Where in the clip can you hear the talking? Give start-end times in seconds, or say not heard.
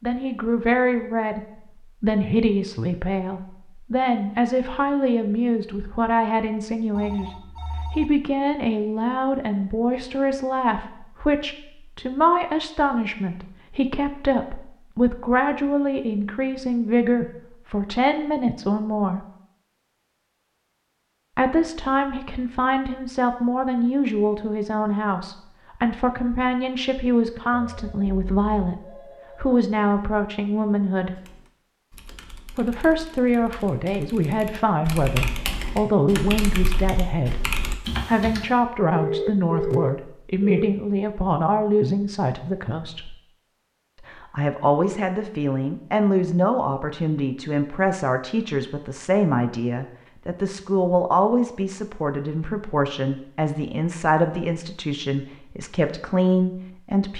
0.0-19.2, 21.4-28.8, 29.4-31.2, 32.5-43.1, 44.0-57.1.